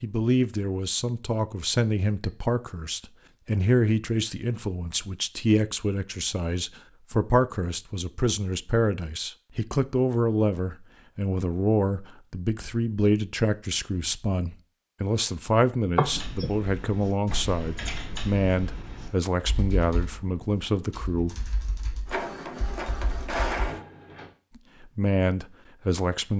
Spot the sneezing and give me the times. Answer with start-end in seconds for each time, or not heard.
15.9-16.5.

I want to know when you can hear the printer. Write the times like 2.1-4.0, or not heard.
22.1-24.4.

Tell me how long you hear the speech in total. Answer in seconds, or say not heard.
23 s.